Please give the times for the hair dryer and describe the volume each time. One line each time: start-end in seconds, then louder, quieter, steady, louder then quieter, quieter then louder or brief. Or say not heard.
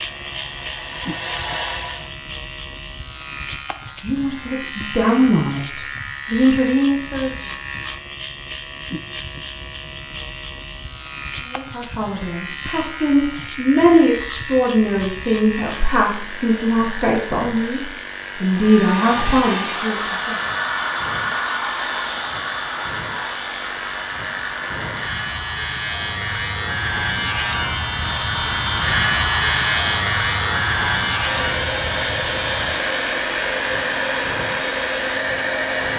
0.0-2.1 brief
18.6-35.9 quieter then louder.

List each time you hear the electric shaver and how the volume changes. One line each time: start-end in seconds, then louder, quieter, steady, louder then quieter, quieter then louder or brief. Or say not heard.
0.0-35.9 louder.